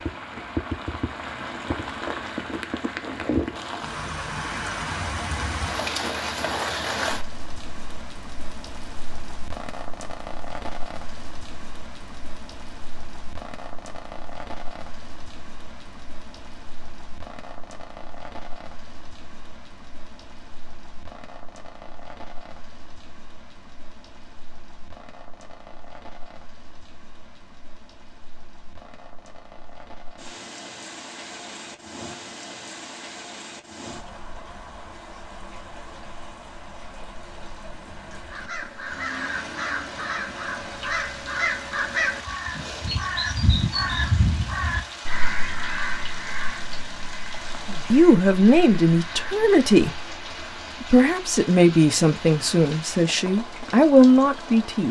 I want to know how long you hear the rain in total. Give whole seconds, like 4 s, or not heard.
55 s.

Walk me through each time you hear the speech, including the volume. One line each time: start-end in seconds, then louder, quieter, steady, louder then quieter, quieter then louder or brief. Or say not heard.
47.9-50.0 brief
50.8-54.8 quieter then louder.